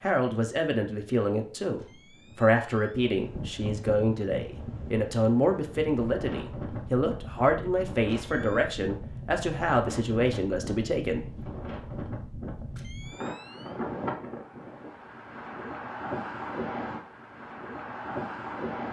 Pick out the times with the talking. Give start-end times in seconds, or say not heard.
0.0-11.4.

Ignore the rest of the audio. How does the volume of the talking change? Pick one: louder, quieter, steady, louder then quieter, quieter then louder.
steady.